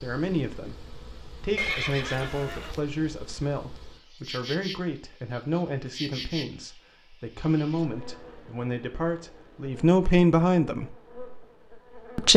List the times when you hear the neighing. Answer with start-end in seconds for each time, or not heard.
1.6-2.8.